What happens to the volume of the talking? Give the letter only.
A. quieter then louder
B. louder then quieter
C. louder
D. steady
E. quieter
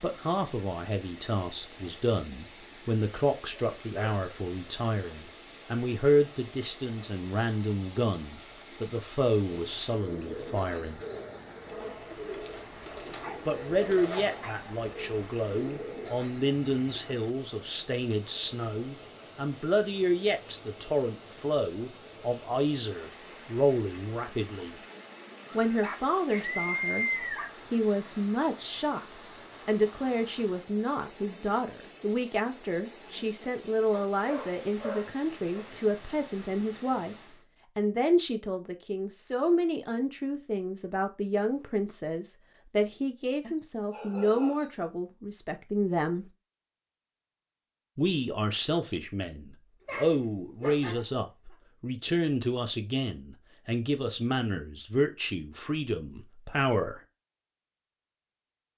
D.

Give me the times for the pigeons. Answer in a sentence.
You can hear the pigeons from 9.5 to 17.1 s.